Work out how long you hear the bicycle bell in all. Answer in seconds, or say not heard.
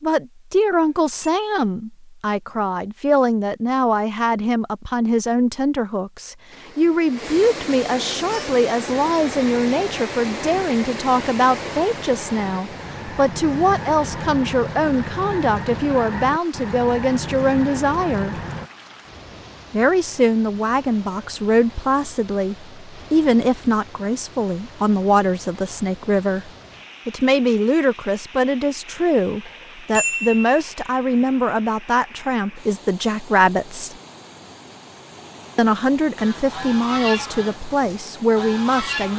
2 s.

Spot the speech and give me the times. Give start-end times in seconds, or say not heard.
0.0-18.4, 19.7-34.0, 35.5-39.1.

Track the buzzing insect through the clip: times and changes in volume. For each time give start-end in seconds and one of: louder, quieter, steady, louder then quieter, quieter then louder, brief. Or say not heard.
not heard.